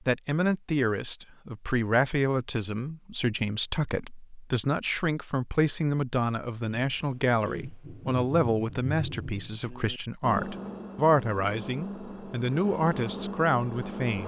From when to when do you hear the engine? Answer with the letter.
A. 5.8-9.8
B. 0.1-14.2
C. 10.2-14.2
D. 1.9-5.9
C.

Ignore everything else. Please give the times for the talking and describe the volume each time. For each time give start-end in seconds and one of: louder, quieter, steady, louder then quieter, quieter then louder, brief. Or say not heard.
0.1-14.2 steady.